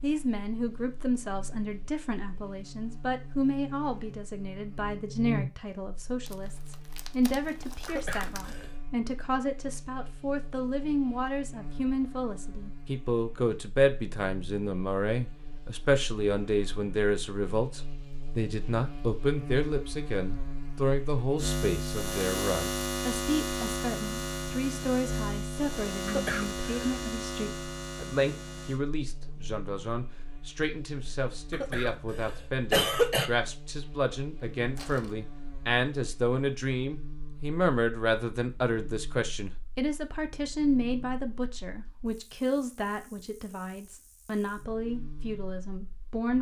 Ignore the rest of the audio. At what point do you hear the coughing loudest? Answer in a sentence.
The loudest moment of the coughing is at 33 seconds.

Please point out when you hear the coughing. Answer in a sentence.
The coughing can be heard from 7.8 to 8.7 s, from 26.1 to 27.1 s and from 31.5 to 33.3 s.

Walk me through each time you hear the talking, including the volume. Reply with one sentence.
The talking can be heard from 0.0 to 46.3 s, at a steady volume.